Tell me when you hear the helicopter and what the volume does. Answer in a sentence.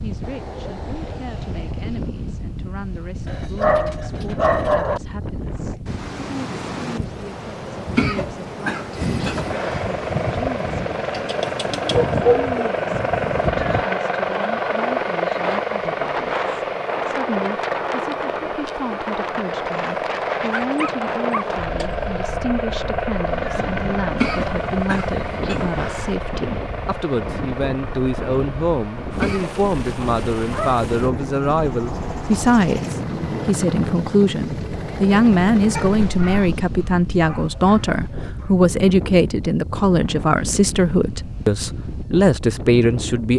You can hear the helicopter from 8.9 to 36.1 s, getting quieter.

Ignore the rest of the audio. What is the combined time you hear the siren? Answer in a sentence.
You can't hear the siren here.